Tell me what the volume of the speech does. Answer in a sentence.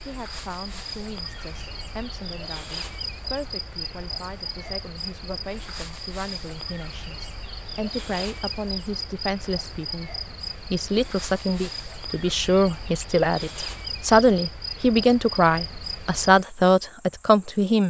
The volume of the speech goes up.